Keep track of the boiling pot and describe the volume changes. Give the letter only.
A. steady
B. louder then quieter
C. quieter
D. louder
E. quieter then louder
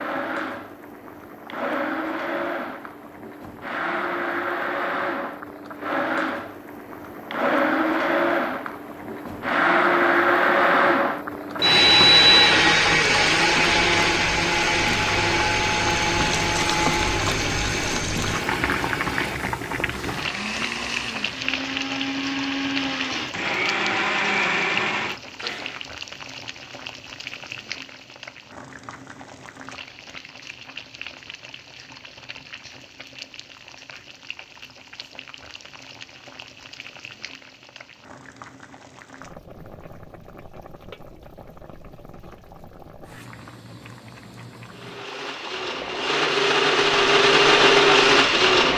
B.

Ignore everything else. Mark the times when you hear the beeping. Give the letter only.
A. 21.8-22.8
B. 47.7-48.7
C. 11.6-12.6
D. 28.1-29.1
C.